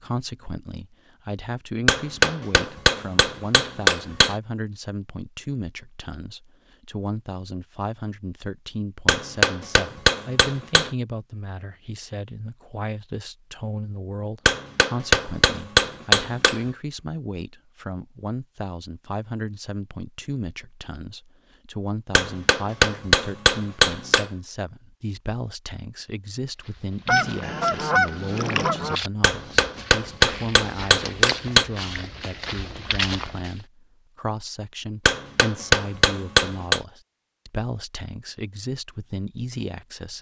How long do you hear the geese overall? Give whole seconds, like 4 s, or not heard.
2 s.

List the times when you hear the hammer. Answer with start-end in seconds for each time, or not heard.
1.9-4.3, 9.1-10.9, 14.4-16.6, 22.1-24.3, 29.2-31.6, 35.0-36.8.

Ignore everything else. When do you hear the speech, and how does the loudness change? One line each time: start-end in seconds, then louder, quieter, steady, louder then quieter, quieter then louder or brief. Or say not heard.
0.0-40.1 steady.